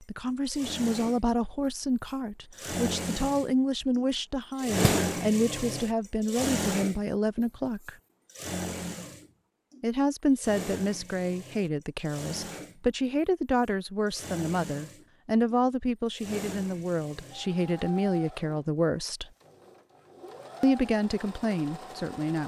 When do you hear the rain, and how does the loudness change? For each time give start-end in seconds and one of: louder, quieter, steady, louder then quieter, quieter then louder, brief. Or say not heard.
not heard.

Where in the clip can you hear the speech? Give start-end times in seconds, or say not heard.
0.0-8.0, 9.8-19.2, 20.6-22.4.